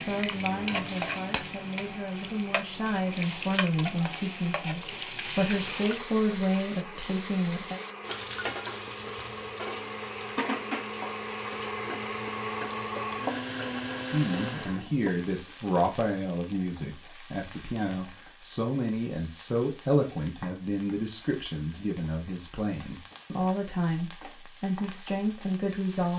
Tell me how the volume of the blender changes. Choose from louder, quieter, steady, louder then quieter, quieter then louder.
louder.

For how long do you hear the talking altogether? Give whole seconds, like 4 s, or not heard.
20 s.